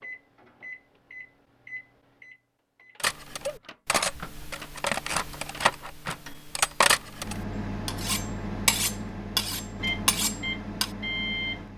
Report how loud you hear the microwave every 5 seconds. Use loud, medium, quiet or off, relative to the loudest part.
medium, loud, loud.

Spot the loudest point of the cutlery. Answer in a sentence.
The volume of the cutlery peaks at 7 seconds.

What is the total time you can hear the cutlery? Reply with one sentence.
The cutlery can be heard for 8 seconds in total.